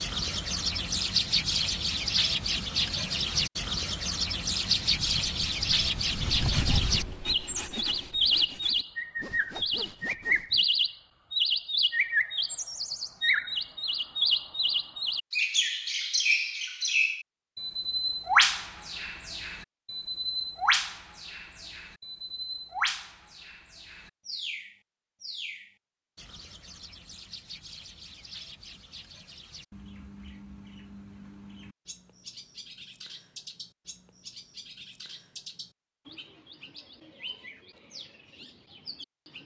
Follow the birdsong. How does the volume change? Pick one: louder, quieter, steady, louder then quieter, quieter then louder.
quieter.